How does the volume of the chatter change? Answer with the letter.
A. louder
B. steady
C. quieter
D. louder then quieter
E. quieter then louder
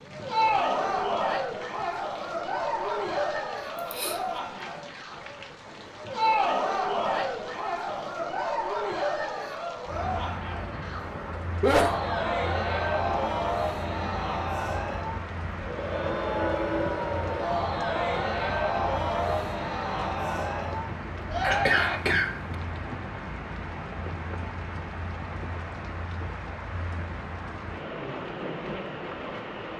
B.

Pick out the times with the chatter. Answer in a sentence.
You can hear the chatter from 0.0 to 22.0 s.